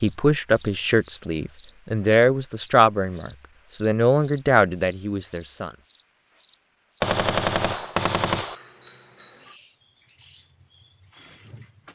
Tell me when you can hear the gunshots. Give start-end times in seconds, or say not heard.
7.0-8.6.